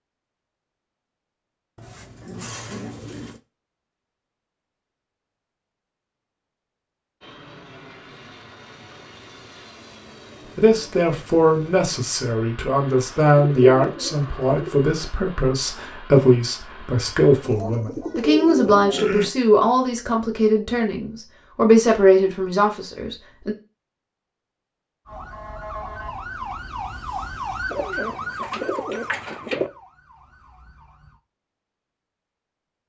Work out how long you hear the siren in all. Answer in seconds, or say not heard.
6 s.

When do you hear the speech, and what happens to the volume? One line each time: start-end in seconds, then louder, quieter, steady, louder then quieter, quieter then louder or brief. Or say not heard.
10.6-23.6 steady.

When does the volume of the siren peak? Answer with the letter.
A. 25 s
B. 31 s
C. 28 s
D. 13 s
C.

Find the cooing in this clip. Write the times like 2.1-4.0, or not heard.
1.8-3.4, 13.3-14.8, 17.4-19.3, 27.7-29.7.